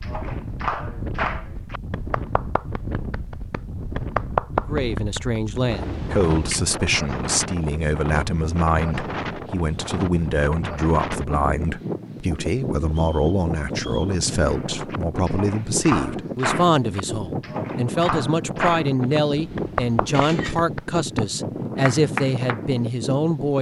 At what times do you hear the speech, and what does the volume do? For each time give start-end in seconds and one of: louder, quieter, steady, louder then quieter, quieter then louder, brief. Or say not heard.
4.7-23.5 steady.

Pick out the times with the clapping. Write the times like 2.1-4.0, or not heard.
0.0-5.6, 14.4-21.2, 21.9-22.6.